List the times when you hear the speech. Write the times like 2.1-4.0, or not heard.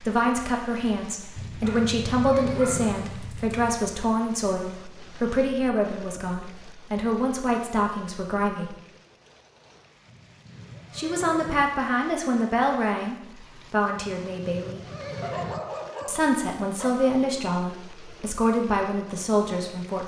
0.0-8.8, 10.9-14.8, 16.1-20.0.